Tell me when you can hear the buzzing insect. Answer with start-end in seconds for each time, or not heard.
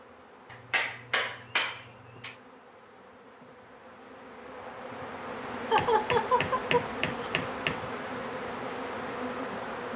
0.0-9.9.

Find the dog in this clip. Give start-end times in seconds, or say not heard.
not heard.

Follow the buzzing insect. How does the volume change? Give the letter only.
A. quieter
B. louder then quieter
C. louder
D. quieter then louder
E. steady
C.